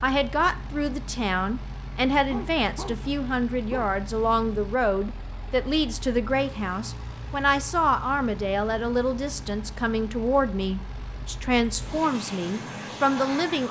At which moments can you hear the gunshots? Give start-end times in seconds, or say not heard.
not heard.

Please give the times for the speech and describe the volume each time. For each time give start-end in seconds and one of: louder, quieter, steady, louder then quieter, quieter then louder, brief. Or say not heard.
0.0-13.6 steady.